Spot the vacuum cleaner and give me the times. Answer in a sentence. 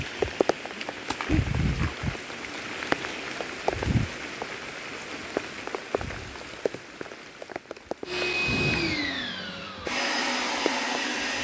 You can hear the vacuum cleaner from 8.1 to 11.3 s.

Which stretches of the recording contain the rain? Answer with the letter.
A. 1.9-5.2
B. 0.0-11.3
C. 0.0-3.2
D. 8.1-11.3
B.